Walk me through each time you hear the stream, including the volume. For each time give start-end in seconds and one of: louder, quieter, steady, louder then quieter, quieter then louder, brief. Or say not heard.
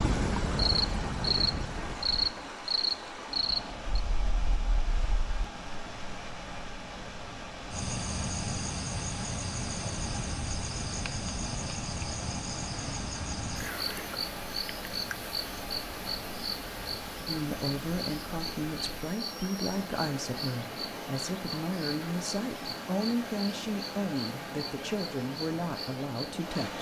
0.0-26.7 steady.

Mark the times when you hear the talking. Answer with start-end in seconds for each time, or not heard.
17.2-26.7.